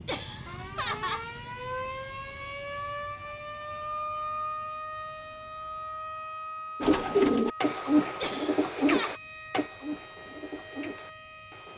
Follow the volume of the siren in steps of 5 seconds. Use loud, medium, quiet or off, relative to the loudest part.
loud, loud, medium.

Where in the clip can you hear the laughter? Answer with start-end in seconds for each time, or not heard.
0.1-1.2, 8.2-9.2.